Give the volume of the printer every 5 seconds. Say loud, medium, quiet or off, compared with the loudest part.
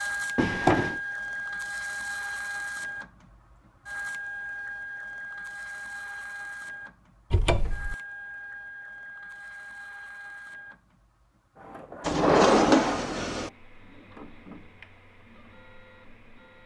loud, medium, quiet, quiet.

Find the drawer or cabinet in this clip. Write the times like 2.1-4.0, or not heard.
0.3-1.0, 7.3-8.0, 12.1-13.5.